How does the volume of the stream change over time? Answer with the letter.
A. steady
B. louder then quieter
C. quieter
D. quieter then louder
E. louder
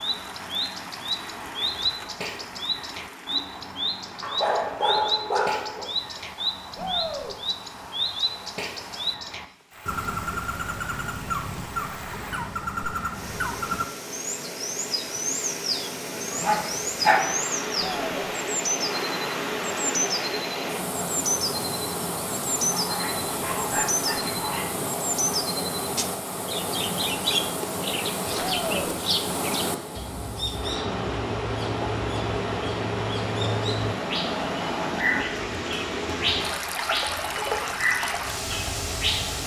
E.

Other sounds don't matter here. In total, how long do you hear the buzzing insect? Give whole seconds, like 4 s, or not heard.
not heard.